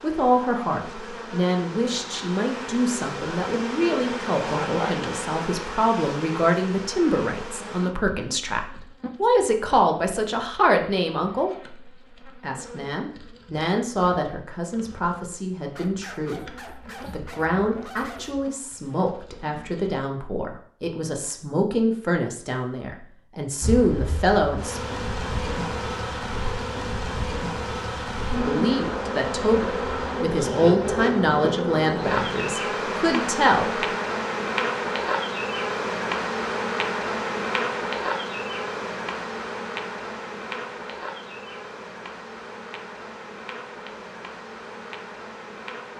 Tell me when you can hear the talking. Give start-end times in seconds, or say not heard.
0.0-24.8, 28.4-33.9.